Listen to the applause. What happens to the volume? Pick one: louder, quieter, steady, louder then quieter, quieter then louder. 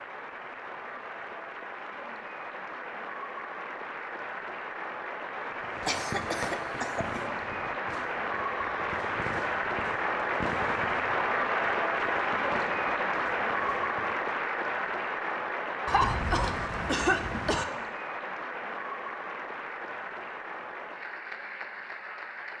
louder then quieter.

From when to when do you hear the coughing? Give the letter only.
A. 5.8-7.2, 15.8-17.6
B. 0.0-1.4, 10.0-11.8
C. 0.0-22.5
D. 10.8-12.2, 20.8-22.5
A.